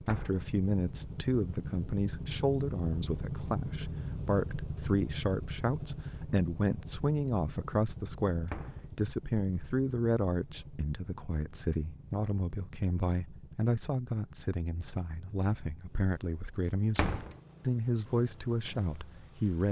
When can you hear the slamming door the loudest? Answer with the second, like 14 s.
17 s.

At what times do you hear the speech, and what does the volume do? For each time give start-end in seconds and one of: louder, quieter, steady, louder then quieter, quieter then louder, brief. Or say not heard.
0.0-19.6 steady.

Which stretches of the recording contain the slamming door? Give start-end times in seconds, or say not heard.
0.1-0.5, 8.4-8.8, 16.9-17.4.